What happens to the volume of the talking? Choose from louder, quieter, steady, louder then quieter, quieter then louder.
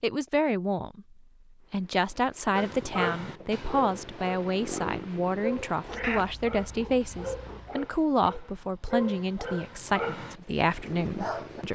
steady.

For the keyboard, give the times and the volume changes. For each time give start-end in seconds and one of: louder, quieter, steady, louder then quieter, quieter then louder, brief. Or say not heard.
not heard.